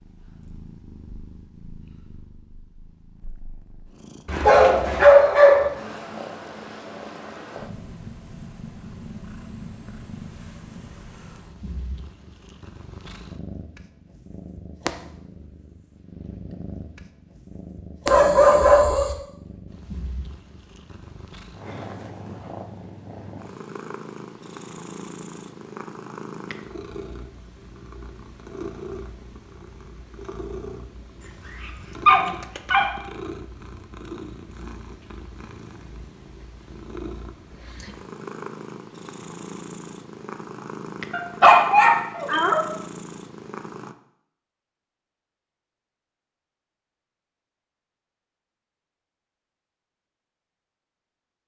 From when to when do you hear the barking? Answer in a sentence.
You can hear the barking from 4.2 to 5.8 s, from 18.1 to 19.1 s, from 32.0 to 32.9 s and from 41.1 to 42.6 s.